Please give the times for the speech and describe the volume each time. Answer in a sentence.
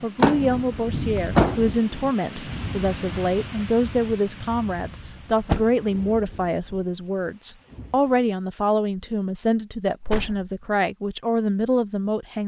You can hear the speech from 0.0 to 12.4 s, at a steady volume.